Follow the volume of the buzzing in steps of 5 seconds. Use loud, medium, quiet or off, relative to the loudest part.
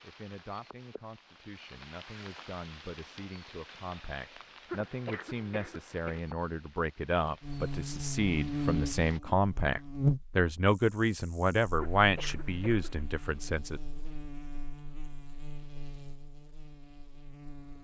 off, loud, loud, quiet.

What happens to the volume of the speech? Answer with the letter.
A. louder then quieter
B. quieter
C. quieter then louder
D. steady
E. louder
E.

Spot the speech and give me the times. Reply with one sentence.
The speech can be heard from 0.0 to 13.8 s.